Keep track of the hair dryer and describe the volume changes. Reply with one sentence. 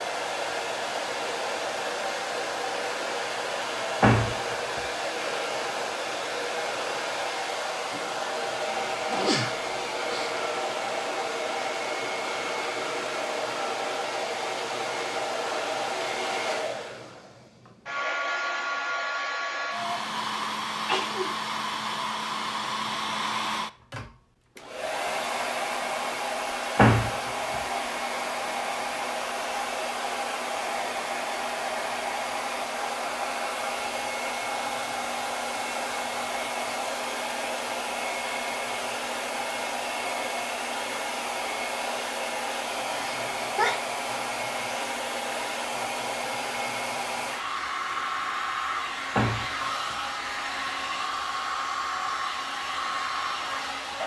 The volume of the hair dryer stays about the same.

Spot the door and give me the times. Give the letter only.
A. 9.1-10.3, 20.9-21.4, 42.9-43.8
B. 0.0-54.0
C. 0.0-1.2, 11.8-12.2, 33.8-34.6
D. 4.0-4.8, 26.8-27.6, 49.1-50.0
D.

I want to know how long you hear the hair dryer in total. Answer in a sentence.
The hair dryer can be heard for 54 seconds in total.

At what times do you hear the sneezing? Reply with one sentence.
The sneezing can be heard from 9.1 to 10.3 s, from 20.9 to 21.4 s and from 42.9 to 43.8 s.